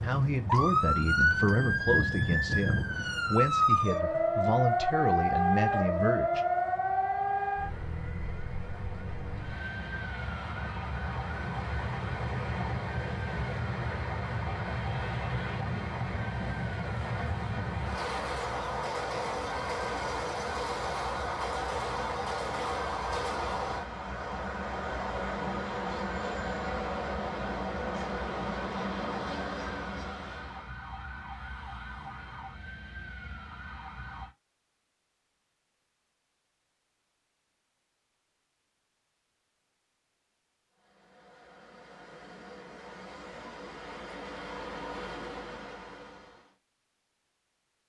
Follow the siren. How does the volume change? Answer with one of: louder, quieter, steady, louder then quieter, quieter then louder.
quieter.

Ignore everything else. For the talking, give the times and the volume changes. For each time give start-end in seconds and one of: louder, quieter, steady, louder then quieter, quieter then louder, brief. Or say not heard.
0.0-6.4 steady.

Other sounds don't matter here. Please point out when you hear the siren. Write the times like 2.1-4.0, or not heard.
0.0-34.3.